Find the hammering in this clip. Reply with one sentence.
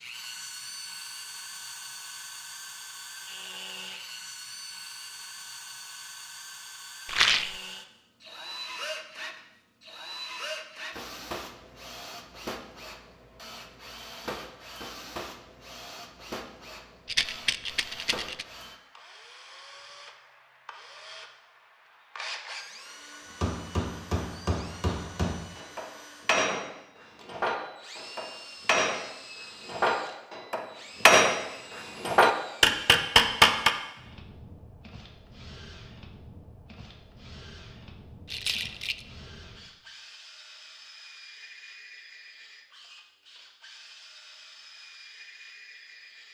The hammering can be heard from 23.4 to 31.4 s and from 32.0 to 33.7 s.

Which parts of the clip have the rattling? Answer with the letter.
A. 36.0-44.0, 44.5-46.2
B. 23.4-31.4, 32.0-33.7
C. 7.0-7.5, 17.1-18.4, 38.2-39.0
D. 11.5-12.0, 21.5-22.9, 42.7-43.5
C.